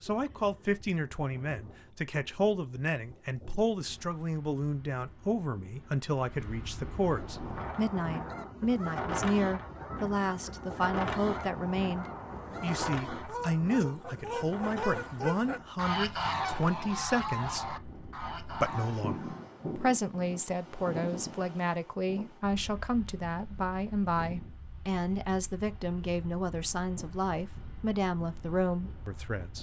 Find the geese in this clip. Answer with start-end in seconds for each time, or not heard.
7.0-19.6.